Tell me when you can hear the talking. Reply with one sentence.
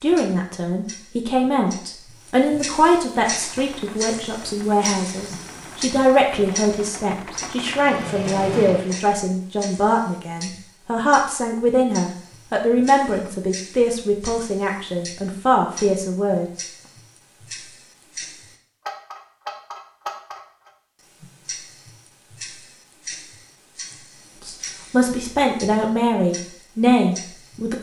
The talking can be heard from 0.0 to 16.6 s and from 24.4 to 27.7 s.